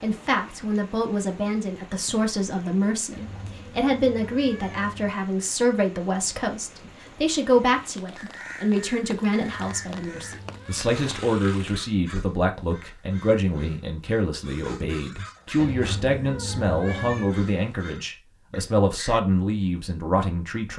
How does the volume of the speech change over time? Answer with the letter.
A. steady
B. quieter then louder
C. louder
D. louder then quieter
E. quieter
A.